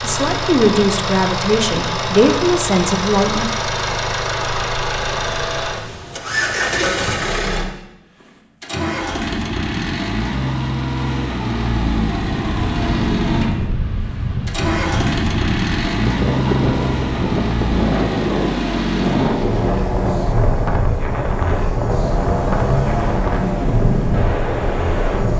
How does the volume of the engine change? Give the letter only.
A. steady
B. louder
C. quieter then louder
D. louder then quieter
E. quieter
A.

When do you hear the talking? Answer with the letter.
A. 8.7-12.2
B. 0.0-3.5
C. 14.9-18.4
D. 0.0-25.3
B.